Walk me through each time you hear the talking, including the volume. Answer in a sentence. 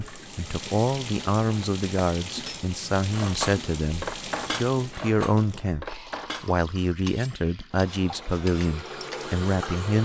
You can hear the talking from 0.0 to 9.9 s, at a steady volume.